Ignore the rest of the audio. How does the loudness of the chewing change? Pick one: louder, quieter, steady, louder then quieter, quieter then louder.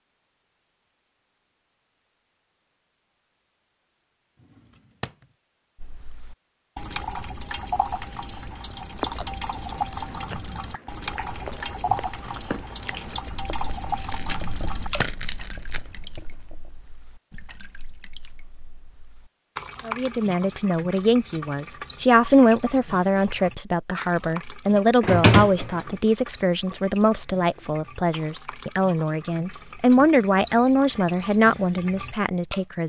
louder.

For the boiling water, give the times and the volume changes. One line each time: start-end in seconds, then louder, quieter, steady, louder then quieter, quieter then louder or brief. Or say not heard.
not heard.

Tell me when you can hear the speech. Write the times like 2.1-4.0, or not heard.
19.9-32.8.